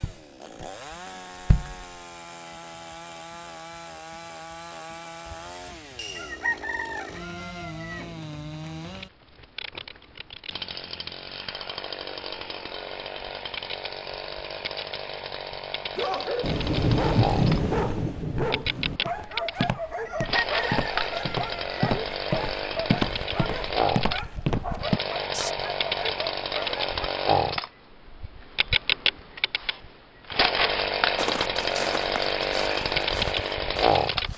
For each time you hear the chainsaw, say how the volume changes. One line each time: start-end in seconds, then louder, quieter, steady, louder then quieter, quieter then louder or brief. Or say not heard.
0.0-34.3 louder.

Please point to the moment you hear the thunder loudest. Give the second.
17 s.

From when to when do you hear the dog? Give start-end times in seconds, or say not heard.
15.9-26.9.